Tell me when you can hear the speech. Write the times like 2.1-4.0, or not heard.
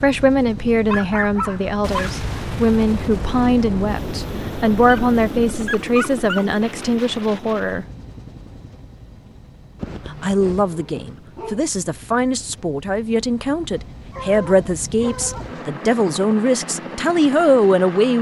0.0-7.8, 10.1-18.1.